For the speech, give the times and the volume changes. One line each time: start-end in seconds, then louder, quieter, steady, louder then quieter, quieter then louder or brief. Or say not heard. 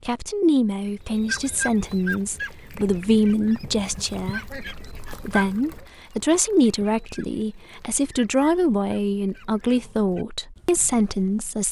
0.1-11.6 steady.